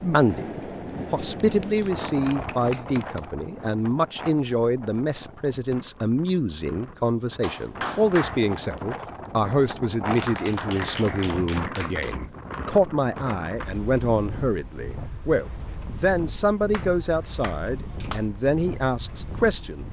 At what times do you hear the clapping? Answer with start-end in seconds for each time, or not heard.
1.4-3.2, 7.4-8.4, 10.2-12.2, 16.7-18.2.